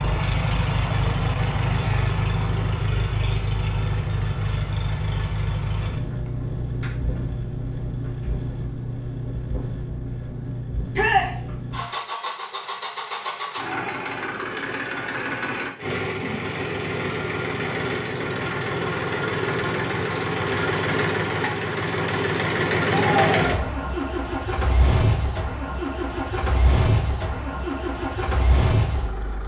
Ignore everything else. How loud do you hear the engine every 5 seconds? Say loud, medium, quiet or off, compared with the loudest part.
loud, medium, medium, loud, loud, loud.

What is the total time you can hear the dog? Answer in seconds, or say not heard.
not heard.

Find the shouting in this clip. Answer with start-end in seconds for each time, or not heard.
10.9-11.3, 22.9-23.6.